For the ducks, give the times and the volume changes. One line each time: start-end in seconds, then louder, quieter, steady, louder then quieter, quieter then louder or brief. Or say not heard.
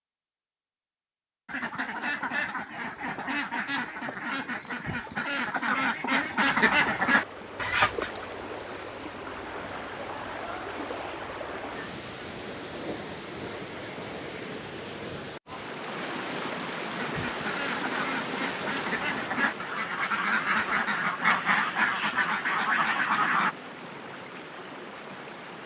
1.4-8.2 louder
16.9-23.6 louder.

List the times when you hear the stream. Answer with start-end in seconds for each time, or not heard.
7.0-25.6.